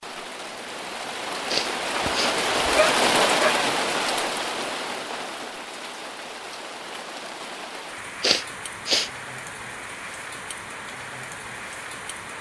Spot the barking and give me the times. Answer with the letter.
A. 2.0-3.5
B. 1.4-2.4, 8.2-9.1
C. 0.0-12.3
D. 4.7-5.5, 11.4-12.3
A.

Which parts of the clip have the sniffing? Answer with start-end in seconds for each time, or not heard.
1.4-2.4, 8.2-9.1.